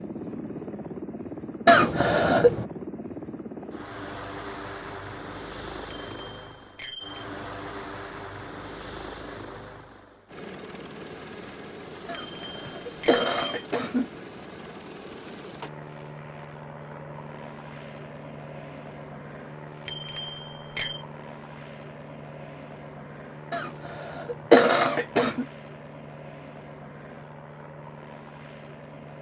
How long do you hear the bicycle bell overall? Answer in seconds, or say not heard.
4 s.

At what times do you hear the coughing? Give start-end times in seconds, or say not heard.
1.6-2.6, 12.1-14.1, 23.5-25.4.